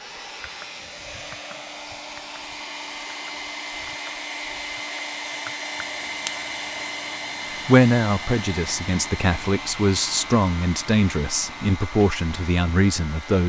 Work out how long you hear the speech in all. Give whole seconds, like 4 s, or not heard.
6 s.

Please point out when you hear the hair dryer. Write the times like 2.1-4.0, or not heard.
0.0-13.4.